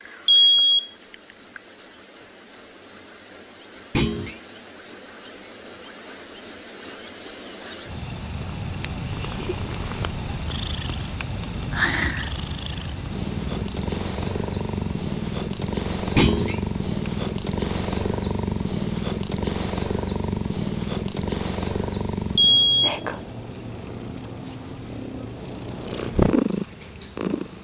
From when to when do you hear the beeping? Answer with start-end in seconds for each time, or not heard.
0.2-0.9, 22.4-22.9.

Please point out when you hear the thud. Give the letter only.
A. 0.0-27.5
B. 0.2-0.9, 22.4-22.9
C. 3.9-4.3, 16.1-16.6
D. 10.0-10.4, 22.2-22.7
C.